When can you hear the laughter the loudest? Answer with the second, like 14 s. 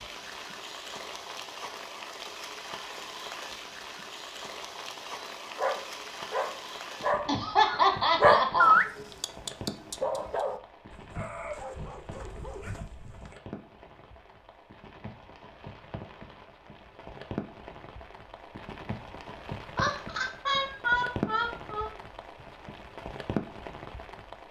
8 s.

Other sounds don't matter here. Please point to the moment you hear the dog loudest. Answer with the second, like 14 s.
9 s.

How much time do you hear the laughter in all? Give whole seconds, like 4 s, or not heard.
4 s.